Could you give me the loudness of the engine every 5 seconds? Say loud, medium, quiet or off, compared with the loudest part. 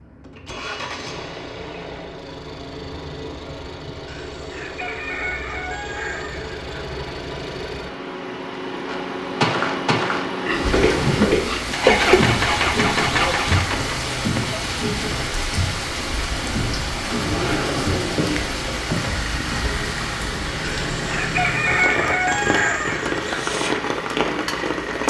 medium, medium, loud, medium, medium.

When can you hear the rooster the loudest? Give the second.
22 s.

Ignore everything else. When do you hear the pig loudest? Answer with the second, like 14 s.
12 s.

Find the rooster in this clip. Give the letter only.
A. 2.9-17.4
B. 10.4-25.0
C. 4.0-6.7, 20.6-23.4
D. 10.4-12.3
C.